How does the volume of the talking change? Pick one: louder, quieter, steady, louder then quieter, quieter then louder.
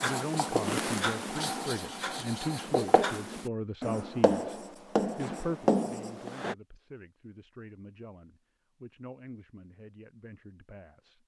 quieter.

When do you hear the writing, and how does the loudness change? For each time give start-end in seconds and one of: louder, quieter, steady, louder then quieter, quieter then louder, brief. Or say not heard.
0.0-6.5 quieter then louder.